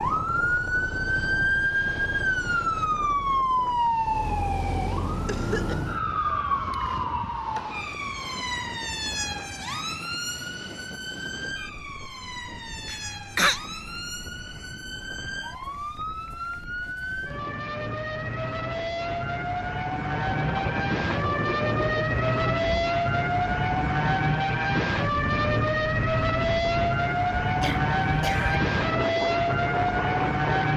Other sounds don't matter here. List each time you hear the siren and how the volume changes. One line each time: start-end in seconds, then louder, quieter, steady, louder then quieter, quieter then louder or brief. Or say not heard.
0.0-30.7 quieter then louder.